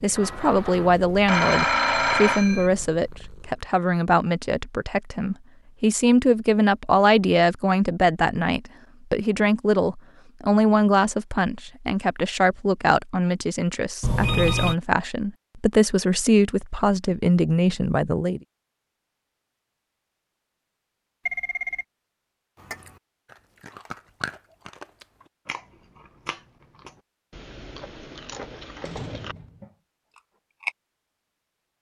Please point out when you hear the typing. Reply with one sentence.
The typing can't be heard in this clip.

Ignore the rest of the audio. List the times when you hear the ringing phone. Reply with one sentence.
The ringing phone can be heard from 0.1 to 2.7 s, from 14.0 to 14.8 s and from 21.2 to 21.9 s.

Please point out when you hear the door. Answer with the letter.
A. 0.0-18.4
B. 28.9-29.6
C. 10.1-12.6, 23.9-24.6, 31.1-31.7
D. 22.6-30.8
B.